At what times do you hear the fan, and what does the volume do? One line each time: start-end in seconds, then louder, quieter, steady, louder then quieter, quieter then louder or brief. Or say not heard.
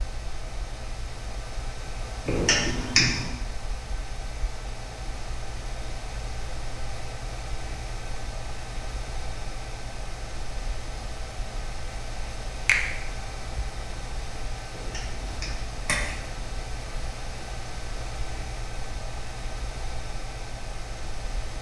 0.0-21.5 steady.